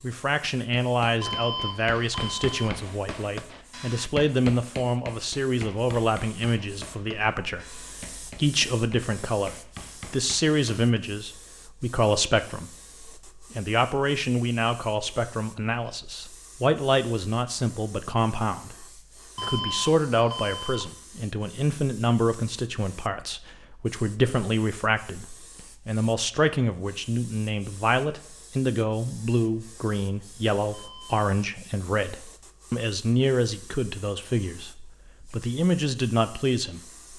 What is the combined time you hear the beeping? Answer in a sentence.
The beeping can be heard for 4 seconds in total.